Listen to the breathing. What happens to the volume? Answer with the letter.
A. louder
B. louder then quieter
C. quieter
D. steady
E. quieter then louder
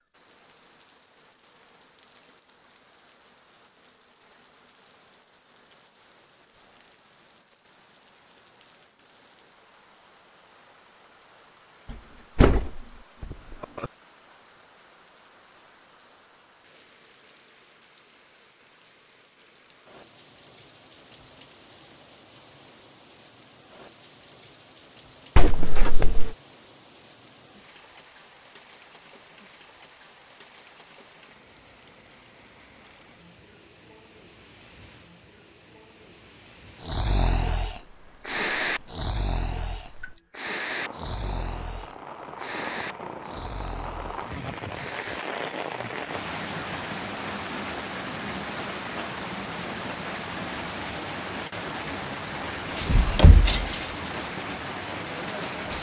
C.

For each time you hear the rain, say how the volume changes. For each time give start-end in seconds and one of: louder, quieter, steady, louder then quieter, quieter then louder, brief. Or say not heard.
0.0-55.7 louder.